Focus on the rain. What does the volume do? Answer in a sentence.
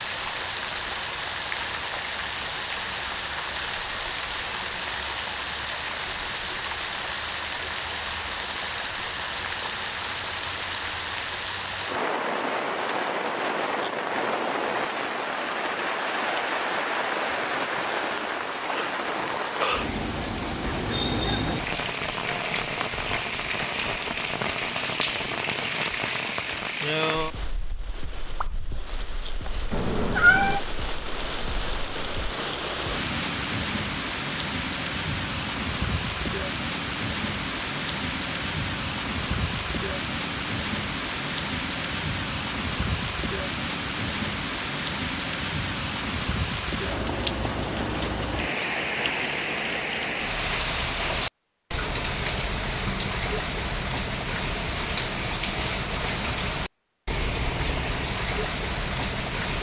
The loudness of the rain stays about the same.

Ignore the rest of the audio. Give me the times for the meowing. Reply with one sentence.
The meowing can be heard from 29.7 to 30.6 s.